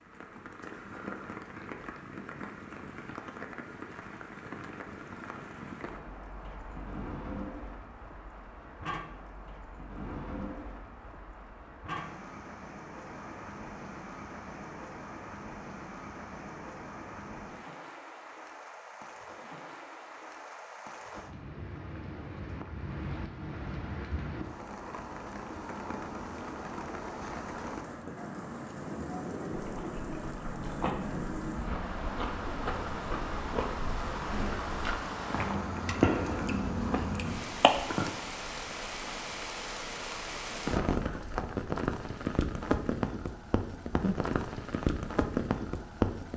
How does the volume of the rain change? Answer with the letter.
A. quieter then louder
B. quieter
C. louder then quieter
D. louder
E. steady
D.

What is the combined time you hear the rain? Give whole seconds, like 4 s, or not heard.
46 s.